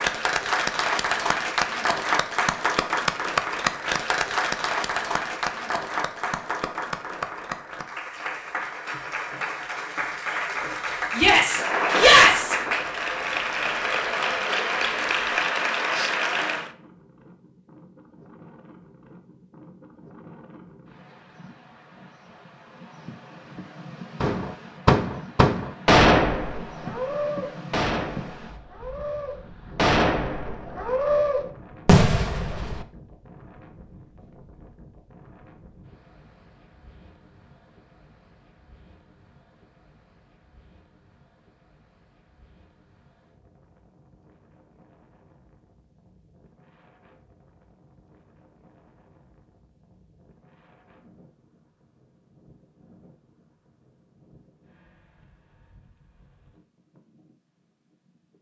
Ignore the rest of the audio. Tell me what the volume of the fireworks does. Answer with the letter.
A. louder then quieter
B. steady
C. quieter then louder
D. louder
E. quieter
C.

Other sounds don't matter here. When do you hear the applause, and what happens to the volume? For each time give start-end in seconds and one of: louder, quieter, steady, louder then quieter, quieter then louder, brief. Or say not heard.
0.0-16.7 quieter then louder.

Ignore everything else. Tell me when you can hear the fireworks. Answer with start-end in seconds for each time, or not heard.
24.2-32.9.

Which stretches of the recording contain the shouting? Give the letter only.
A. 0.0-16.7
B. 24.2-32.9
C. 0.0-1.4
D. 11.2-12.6
D.